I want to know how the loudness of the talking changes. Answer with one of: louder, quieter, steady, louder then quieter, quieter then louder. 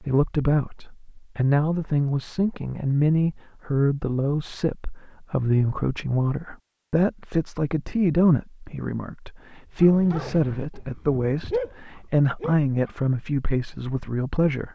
steady.